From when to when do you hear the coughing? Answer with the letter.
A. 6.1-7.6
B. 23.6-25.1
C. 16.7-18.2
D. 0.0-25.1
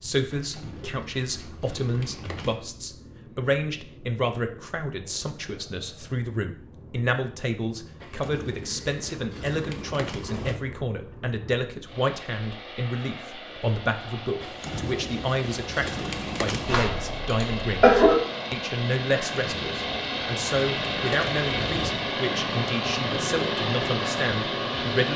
C.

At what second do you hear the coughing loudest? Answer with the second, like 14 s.
18 s.